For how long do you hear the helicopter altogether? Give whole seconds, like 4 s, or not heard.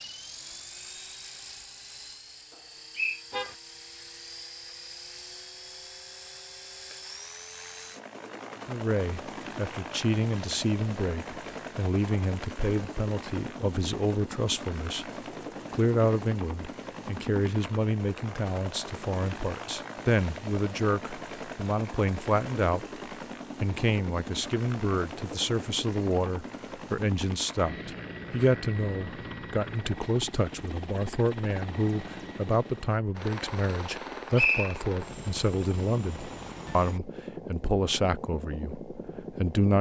40 s.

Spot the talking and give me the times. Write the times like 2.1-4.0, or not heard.
8.7-15.1, 15.7-22.9, 23.6-39.7.